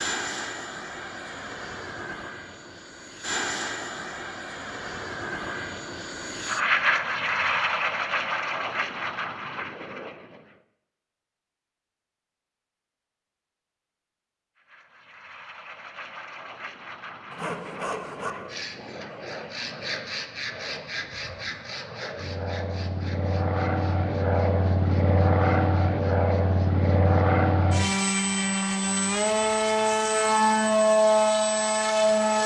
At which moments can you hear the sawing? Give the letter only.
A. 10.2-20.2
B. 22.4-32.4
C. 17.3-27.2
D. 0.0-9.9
C.